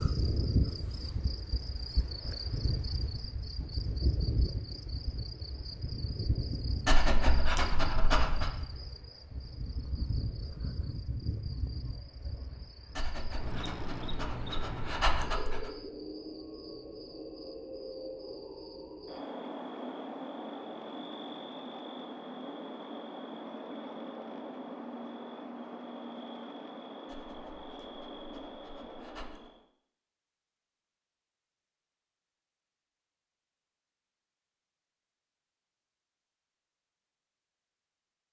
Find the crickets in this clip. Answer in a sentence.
You can hear the crickets from 0.0 to 29.6 s.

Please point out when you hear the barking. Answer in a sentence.
The barking can be heard from 6.8 to 8.5 s, from 12.9 to 15.8 s and from 27.1 to 29.4 s.